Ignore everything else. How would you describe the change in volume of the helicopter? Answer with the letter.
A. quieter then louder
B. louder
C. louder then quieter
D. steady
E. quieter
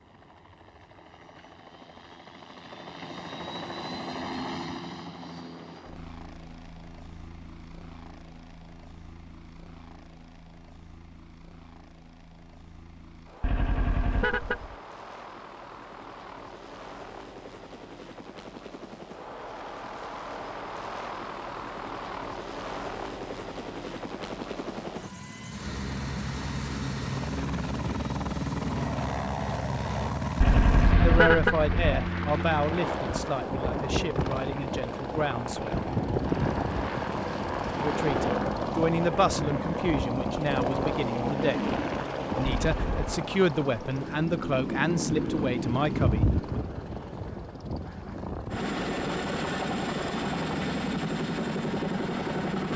B.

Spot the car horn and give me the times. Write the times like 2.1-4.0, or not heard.
13.4-14.8, 30.4-32.1, 42.5-43.2.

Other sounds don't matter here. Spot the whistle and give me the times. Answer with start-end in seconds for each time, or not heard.
not heard.